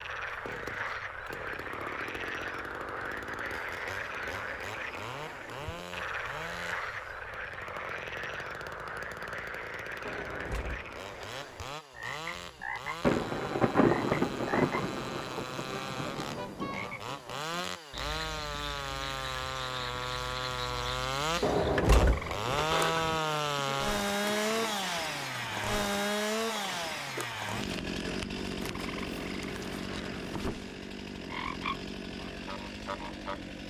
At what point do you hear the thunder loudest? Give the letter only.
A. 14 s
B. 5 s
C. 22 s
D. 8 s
A.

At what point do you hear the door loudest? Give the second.
22 s.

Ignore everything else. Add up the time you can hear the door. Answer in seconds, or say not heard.
3 s.